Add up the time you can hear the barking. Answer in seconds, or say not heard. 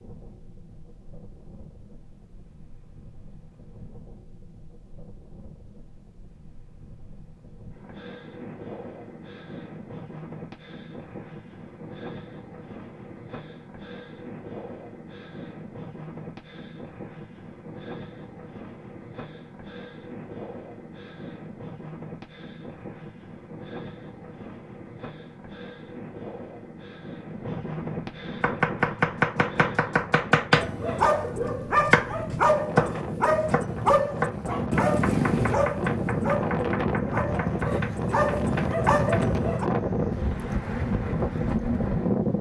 9 s.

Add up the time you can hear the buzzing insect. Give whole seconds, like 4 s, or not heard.
not heard.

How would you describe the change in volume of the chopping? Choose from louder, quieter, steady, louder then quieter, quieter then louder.
quieter.